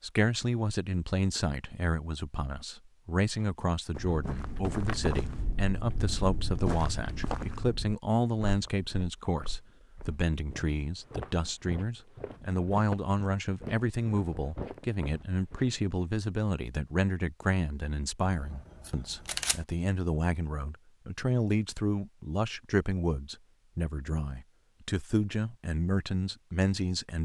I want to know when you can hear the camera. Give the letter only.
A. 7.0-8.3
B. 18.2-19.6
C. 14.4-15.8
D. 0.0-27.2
B.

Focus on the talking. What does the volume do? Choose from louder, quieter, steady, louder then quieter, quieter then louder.
steady.